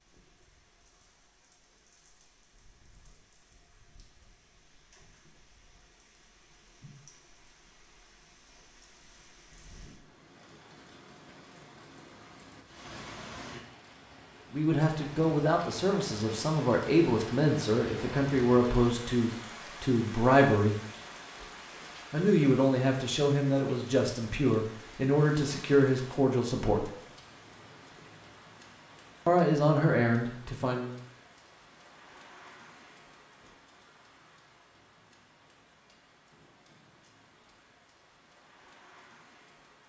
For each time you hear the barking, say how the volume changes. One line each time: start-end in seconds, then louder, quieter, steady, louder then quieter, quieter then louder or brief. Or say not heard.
not heard.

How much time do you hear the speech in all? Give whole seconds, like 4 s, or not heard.
13 s.